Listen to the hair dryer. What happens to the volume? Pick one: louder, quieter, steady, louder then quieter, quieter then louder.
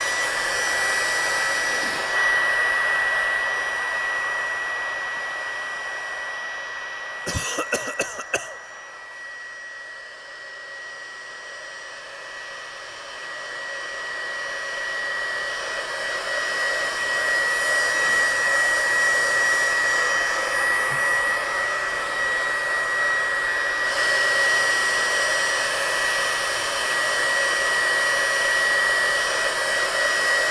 quieter then louder.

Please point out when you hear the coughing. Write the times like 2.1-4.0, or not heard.
7.2-8.6.